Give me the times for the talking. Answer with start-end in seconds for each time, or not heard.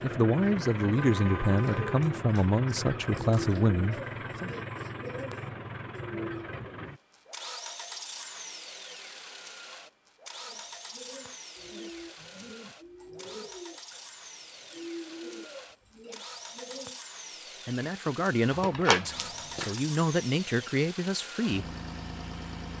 0.0-4.5, 17.6-21.6.